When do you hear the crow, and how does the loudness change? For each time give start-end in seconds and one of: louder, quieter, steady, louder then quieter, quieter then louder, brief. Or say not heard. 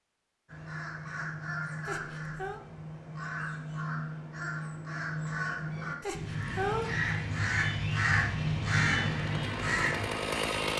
0.5-10.1 louder.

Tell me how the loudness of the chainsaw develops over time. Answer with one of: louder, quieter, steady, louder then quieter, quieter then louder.
louder.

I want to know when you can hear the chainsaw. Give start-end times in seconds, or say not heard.
6.5-10.7.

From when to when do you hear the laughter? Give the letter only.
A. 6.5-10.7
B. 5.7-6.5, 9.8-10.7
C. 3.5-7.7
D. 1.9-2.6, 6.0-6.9
D.